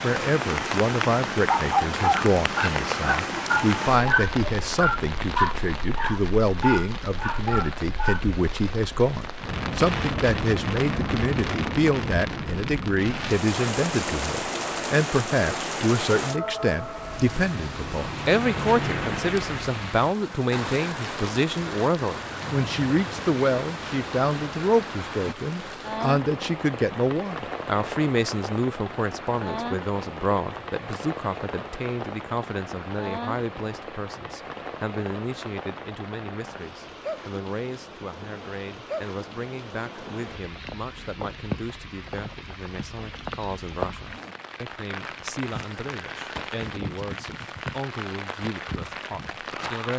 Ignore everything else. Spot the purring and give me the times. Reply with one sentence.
You can't hear the purring here.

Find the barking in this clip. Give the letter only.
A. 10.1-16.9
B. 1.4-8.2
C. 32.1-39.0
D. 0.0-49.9
B.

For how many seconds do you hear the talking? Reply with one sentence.
The talking can be heard for 50 seconds in total.